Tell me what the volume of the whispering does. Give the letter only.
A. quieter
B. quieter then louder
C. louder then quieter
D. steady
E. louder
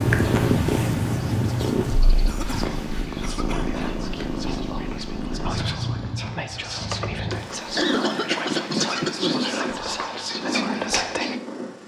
E.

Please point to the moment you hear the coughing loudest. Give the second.
9 s.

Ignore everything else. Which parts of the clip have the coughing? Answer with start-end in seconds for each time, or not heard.
2.2-3.9, 6.9-9.4.